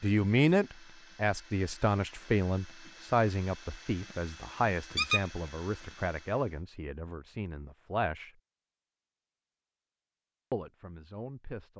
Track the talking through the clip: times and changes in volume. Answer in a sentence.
You can hear the talking from 0.0 to 8.3 s, getting quieter; and briefly from 10.5 to 11.7 s.